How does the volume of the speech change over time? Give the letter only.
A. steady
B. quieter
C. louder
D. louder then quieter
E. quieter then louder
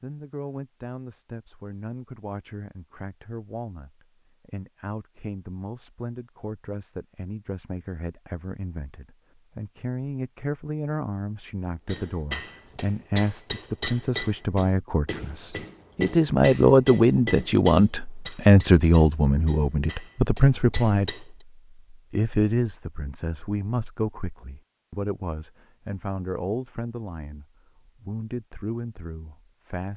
D.